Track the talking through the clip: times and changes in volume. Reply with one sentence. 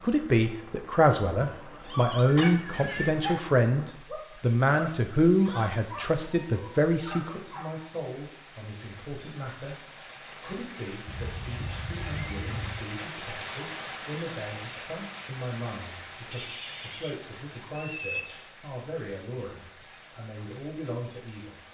You can hear the talking from 0.0 to 21.6 s, getting quieter.